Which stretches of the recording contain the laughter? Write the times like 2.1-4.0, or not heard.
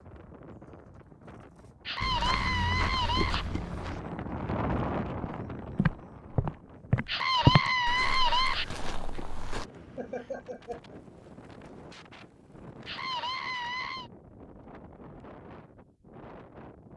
9.9-11.0.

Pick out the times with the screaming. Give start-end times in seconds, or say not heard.
1.9-3.5, 7.0-8.7, 12.8-14.1.